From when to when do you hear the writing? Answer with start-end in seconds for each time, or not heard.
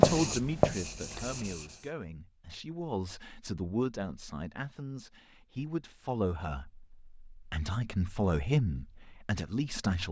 0.0-1.8.